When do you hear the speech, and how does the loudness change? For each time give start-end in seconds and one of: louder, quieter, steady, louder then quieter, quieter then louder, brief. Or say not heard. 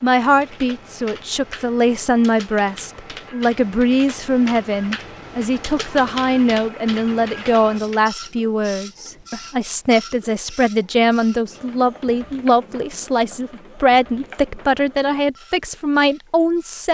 0.0-16.9 steady.